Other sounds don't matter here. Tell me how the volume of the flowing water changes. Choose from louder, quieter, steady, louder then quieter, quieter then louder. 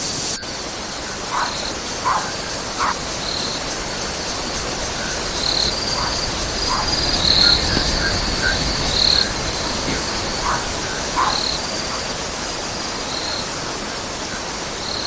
steady.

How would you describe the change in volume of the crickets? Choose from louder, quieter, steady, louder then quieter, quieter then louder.
louder then quieter.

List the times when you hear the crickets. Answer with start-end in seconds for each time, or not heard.
0.0-15.0.